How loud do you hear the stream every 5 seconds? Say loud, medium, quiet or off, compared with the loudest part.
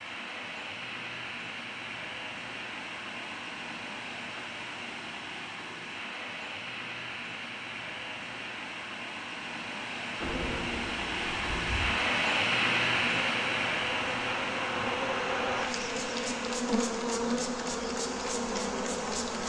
medium, medium, loud, medium.